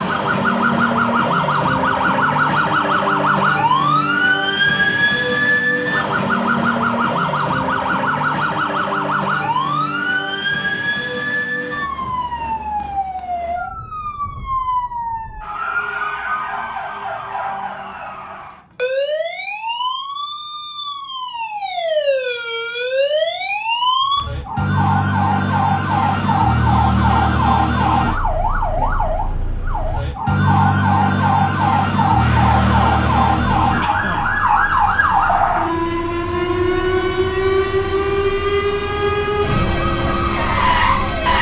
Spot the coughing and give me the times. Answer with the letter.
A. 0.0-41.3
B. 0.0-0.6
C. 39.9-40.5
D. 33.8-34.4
D.